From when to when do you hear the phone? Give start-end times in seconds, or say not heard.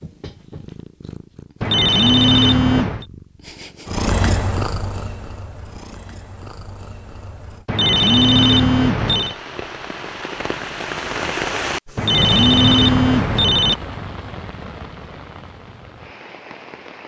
1.6-3.0, 7.7-9.3, 11.9-13.8.